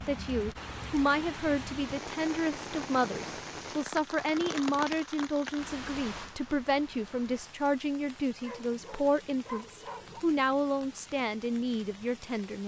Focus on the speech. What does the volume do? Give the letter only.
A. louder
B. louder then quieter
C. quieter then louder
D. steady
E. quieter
D.